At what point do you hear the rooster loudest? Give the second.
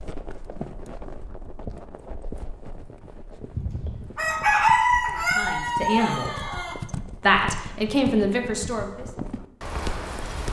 5 s.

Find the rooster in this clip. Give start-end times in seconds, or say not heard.
3.5-6.8.